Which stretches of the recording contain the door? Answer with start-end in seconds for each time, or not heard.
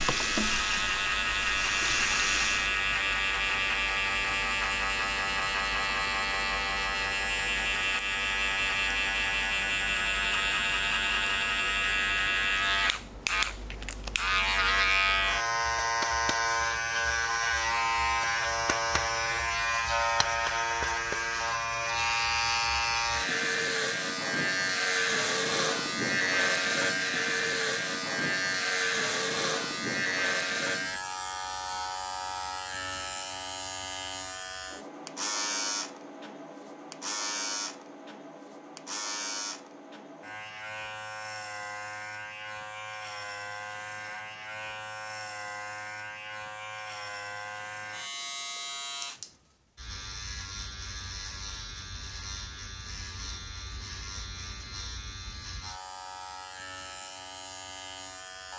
not heard.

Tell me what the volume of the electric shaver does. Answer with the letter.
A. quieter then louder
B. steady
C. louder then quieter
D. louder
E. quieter
E.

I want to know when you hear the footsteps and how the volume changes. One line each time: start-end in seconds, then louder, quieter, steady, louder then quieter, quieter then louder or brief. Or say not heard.
not heard.